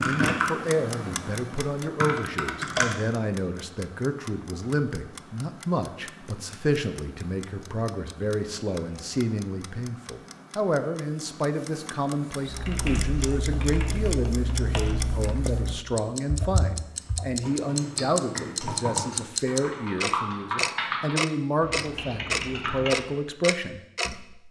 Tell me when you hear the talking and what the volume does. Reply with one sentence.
The talking can be heard from 0.0 to 24.4 s, at a steady volume.